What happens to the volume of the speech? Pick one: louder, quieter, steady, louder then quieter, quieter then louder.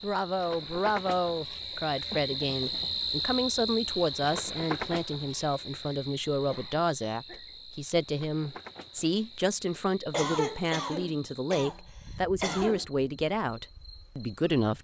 steady.